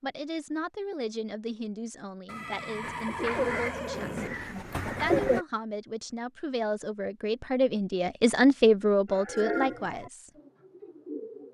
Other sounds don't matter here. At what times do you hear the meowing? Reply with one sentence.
The meowing can't be heard in this clip.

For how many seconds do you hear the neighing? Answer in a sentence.
You can hear the neighing for 2 seconds altogether.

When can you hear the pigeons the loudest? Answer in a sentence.
The volume of the pigeons peaks at 5 seconds.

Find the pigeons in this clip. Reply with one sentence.
You can hear the pigeons from 2.8 to 5.5 s and from 9.1 to 11.4 s.